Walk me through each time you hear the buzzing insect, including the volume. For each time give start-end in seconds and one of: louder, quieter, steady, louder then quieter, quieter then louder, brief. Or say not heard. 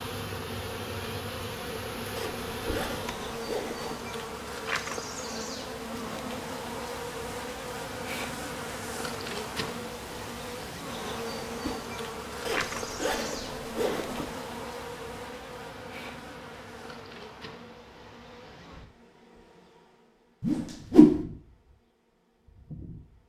0.0-23.2 quieter.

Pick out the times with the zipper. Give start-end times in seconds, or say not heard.
2.1-4.0, 12.4-14.3.